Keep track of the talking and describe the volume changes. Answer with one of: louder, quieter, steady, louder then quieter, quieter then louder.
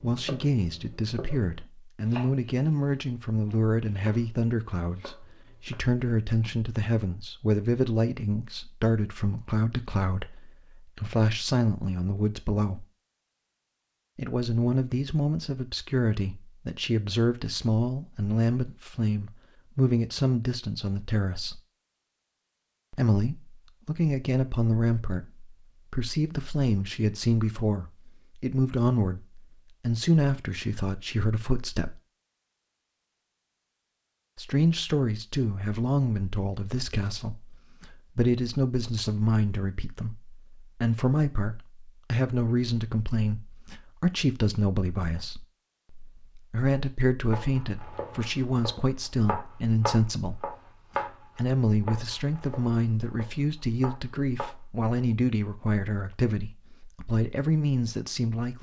steady.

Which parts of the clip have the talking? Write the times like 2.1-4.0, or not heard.
0.0-12.8, 14.2-21.6, 22.9-32.0, 34.4-58.5.